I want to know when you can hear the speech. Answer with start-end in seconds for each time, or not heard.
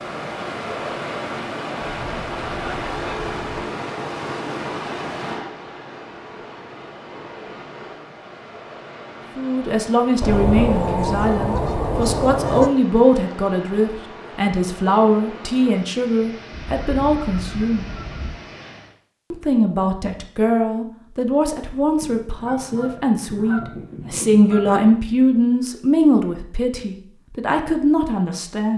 9.3-17.9, 19.3-28.7.